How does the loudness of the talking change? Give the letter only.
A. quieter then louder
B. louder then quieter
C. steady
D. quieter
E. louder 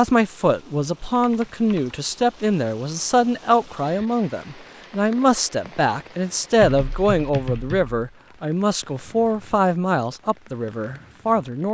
C.